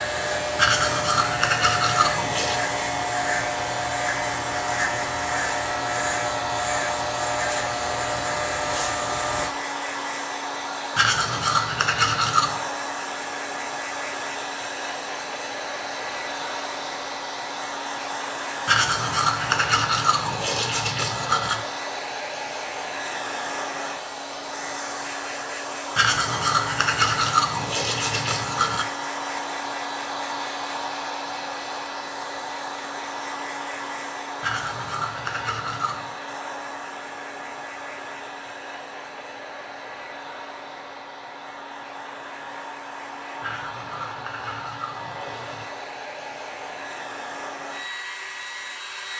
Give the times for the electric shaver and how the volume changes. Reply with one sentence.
The electric shaver can be heard from 0.0 to 9.6 s, at a steady volume.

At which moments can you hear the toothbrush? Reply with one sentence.
You can hear the toothbrush from 0.6 to 2.6 s, from 10.9 to 12.6 s, from 18.6 to 21.6 s, from 25.9 to 28.9 s, from 34.4 to 36.1 s and from 43.4 to 45.6 s.